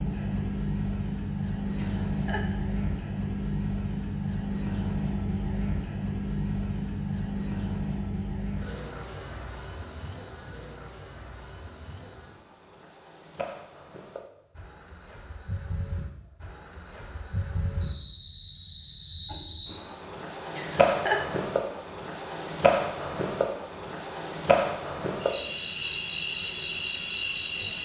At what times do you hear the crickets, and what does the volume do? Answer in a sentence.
You can hear the crickets from 0.0 to 27.7 s, getting quieter then louder.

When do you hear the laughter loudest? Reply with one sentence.
The loudest moment of the laughter is at 21 seconds.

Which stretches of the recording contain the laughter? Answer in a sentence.
You can hear the laughter from 1.8 to 2.5 s and from 20.5 to 21.2 s.